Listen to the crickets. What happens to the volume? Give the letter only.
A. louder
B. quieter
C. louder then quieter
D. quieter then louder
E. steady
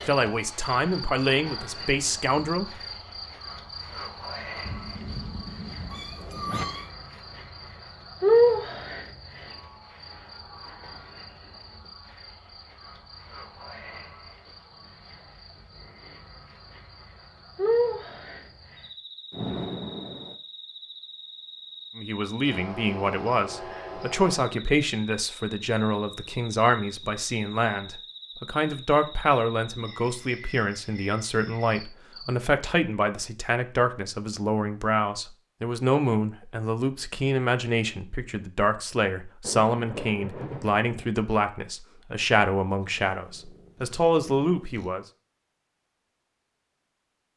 C.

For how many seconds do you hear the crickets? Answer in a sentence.
The crickets can be heard for 32 seconds in total.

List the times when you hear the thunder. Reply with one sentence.
The thunder can be heard from 4.7 to 6.7 s, from 19.3 to 20.4 s and from 39.4 to 41.1 s.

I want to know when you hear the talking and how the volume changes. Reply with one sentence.
You can hear the talking briefly from 0.1 to 2.8 s; and from 21.9 to 45.0 s, at a steady volume.